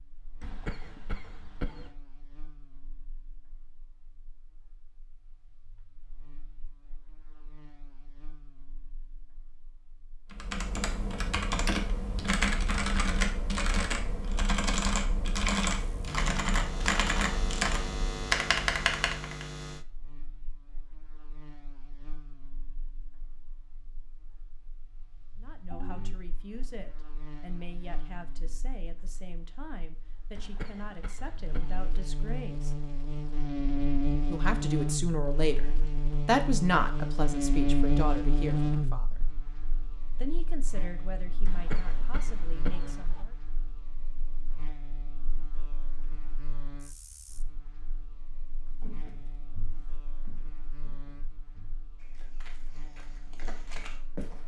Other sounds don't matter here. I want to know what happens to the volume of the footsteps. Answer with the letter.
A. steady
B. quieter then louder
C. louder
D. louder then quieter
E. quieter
B.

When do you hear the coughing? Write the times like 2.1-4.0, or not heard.
0.4-1.9, 30.4-31.9, 41.5-43.2.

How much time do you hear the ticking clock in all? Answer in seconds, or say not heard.
not heard.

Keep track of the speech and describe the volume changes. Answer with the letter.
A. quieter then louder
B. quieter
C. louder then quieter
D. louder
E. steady
C.